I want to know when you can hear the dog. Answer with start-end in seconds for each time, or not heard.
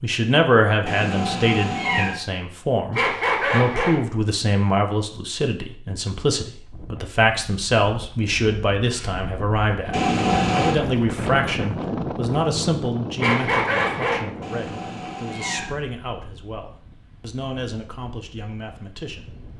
2.9-4.0, 13.2-14.2.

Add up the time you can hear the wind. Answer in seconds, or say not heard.
13 s.